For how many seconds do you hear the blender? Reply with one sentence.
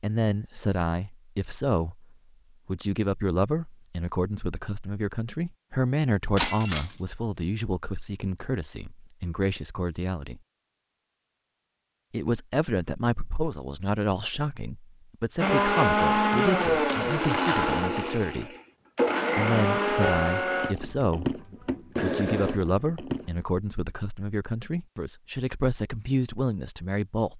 You can hear the blender for 8 seconds altogether.